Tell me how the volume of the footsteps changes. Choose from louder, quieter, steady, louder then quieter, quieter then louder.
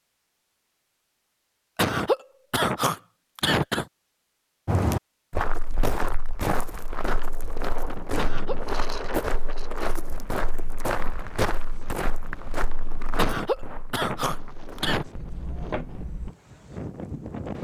quieter.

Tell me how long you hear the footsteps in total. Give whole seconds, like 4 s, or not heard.
12 s.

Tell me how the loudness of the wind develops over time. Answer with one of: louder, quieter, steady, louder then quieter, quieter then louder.
quieter then louder.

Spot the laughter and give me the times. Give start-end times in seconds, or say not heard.
1.8-3.9, 8.2-8.6, 13.2-15.1.